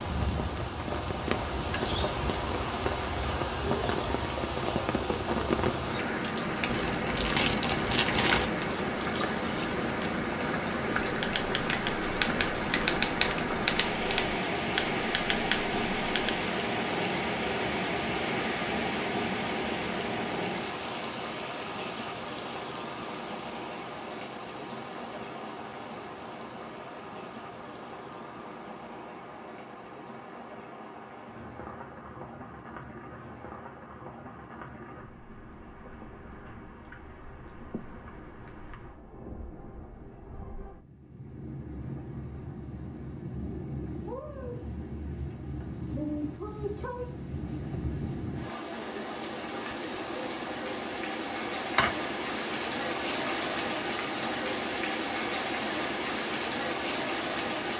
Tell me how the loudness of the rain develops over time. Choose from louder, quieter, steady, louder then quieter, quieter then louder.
quieter then louder.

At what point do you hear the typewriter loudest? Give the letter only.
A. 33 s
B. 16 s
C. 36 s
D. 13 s
D.